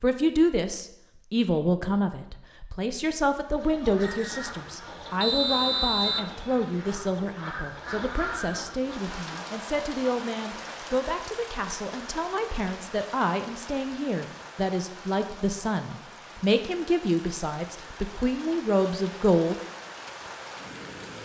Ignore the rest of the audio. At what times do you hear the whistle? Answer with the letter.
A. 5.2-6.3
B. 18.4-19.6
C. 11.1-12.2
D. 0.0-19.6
A.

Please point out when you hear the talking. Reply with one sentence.
You can hear the talking from 0.0 to 19.6 s.